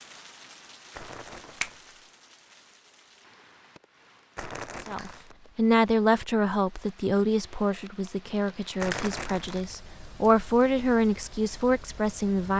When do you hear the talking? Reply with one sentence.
The talking can be heard from 4.8 to 12.5 s.